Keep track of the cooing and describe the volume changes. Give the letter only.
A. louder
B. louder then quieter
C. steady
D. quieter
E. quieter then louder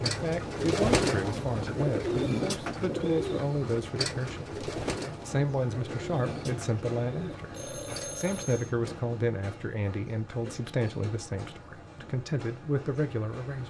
D.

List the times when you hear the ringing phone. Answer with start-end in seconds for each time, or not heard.
7.5-8.8.